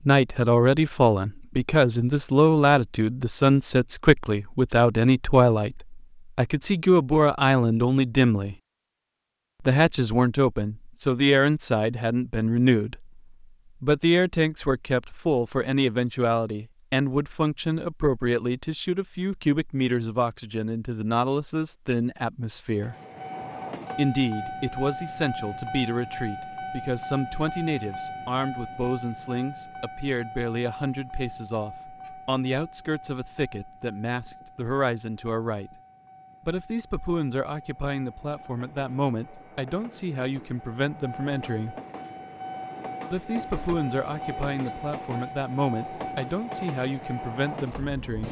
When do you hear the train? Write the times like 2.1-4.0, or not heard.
22.8-48.2.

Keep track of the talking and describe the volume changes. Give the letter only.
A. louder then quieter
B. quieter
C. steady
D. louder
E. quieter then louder
B.